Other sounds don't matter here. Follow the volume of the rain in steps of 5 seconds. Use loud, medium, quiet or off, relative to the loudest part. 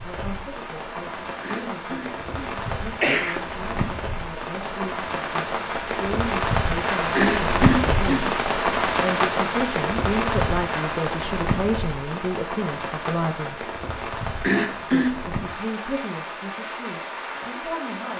medium, loud, medium, medium.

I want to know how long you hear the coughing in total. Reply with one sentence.
You can hear the coughing for 4 seconds altogether.